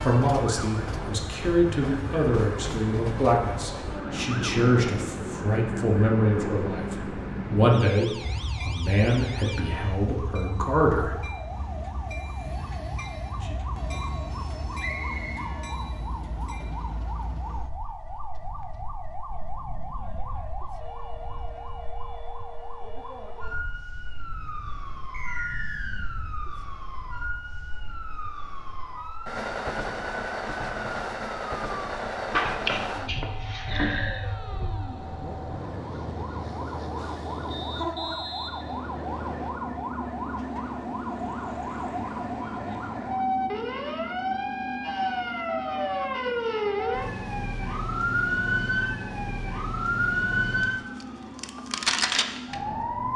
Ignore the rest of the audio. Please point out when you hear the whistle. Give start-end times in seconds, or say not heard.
14.8-15.3, 25.1-26.2, 37.5-39.5.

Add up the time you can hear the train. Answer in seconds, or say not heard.
53 s.